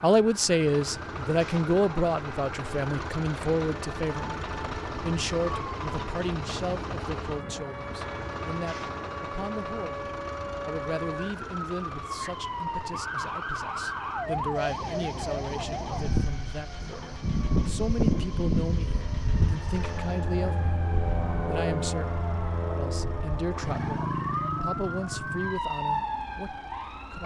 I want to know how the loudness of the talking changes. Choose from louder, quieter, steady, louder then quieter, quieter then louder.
quieter.